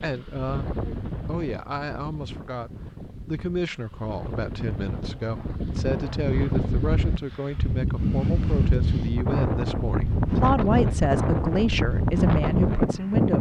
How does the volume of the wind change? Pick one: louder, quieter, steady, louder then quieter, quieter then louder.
louder.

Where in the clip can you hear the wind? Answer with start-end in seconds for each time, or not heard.
0.0-13.3.